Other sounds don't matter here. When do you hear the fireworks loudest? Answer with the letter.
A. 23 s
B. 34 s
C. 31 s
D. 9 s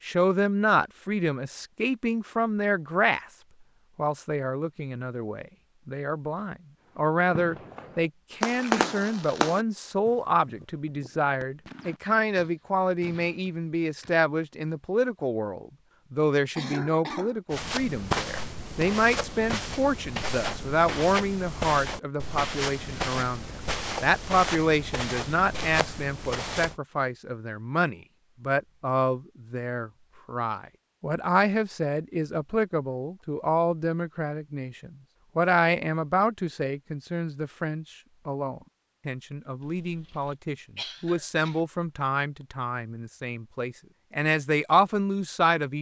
D.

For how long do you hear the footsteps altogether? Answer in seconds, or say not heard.
9 s.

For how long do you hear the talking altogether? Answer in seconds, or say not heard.
45 s.